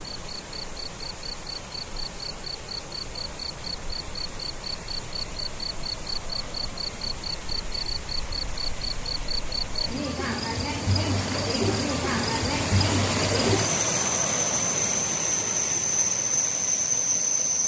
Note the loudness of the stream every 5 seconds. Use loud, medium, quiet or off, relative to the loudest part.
medium, medium, loud, medium.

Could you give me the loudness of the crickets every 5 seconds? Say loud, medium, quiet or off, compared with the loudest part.
quiet, medium, loud, loud.